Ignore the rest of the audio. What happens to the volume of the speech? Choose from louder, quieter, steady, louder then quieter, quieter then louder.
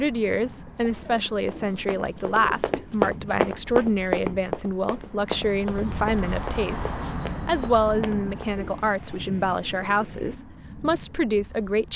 steady.